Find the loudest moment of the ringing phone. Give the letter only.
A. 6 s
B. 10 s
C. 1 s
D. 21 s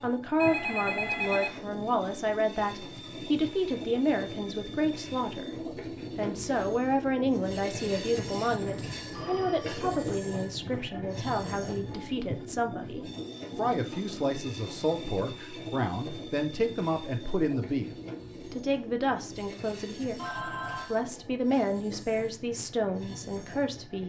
C.